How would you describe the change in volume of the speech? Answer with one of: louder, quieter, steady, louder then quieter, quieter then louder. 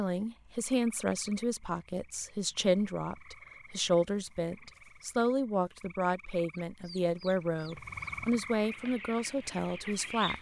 steady.